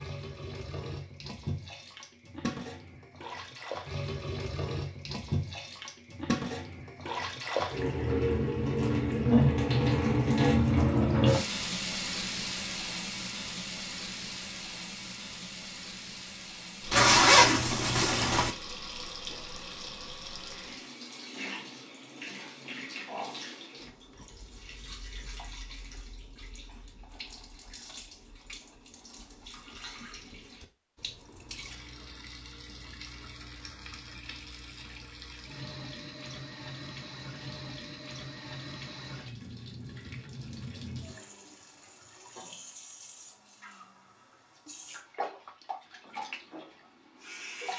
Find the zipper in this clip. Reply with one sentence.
You can hear the zipper from 16.9 to 18.6 s.